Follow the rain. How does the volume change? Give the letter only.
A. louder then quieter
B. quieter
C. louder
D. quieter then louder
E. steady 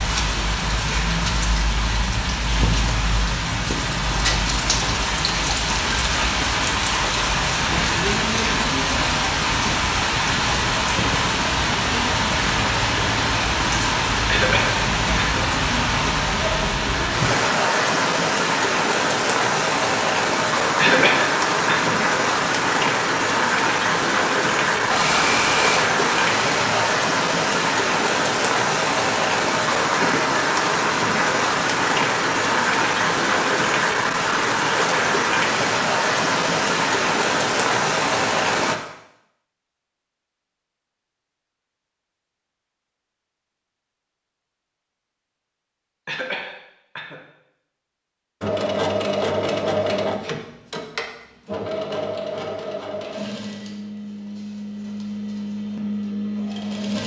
E.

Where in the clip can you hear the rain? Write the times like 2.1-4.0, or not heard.
0.0-38.8.